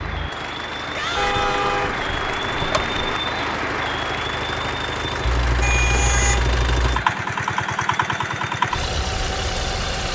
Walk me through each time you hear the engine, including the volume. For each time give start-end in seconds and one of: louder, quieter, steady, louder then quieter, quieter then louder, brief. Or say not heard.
0.0-10.1 louder.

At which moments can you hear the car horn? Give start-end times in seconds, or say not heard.
1.1-3.1, 5.2-7.0.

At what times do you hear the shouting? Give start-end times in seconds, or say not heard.
0.9-1.7.